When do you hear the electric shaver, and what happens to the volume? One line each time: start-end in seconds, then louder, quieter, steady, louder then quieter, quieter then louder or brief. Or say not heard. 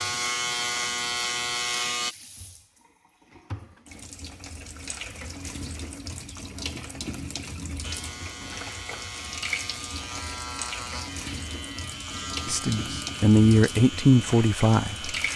0.0-2.1 brief
7.8-15.3 steady.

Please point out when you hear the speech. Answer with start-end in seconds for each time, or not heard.
12.4-15.2.